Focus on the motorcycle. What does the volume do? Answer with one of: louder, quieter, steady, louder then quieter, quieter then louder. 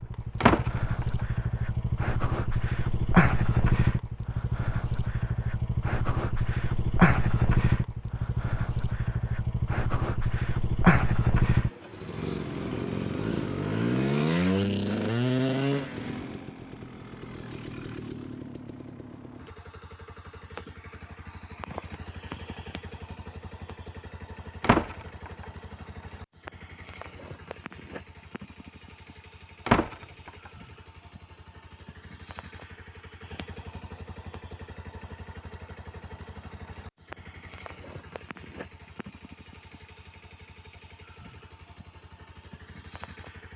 quieter.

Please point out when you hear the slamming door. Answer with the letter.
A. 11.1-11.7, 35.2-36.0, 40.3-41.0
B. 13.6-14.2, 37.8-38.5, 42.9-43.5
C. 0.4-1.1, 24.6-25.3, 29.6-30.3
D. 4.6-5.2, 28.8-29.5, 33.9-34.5
C.